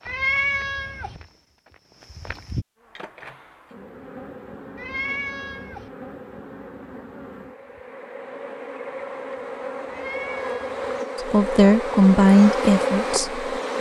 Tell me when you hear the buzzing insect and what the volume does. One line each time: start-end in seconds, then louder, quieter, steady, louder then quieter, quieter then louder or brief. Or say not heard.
2.8-13.7 louder.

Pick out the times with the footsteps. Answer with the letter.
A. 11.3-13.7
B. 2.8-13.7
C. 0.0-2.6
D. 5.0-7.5
C.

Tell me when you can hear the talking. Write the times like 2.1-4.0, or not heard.
11.3-13.7.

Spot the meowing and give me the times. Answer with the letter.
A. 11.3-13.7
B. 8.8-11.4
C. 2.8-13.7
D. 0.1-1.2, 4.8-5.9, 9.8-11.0
D.